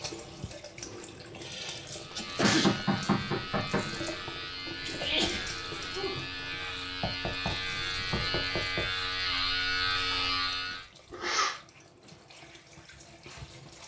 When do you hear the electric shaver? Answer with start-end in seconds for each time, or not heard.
1.9-10.8.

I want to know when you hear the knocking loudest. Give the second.
3 s.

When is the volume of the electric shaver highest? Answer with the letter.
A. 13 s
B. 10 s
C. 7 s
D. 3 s
B.